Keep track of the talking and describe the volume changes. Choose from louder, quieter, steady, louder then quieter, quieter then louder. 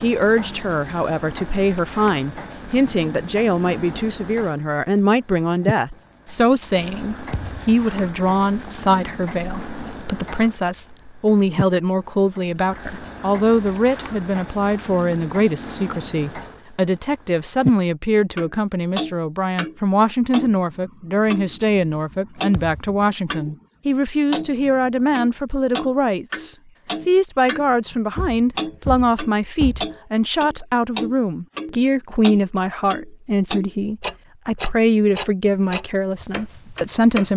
steady.